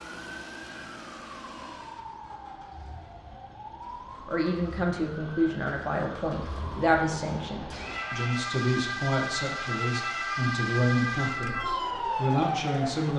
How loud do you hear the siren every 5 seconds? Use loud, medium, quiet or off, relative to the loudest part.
quiet, medium, loud.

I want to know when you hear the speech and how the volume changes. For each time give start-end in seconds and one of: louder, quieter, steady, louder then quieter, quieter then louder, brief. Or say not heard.
4.2-13.1 steady.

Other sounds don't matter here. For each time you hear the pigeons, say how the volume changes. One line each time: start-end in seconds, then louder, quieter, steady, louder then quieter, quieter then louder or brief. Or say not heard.
not heard.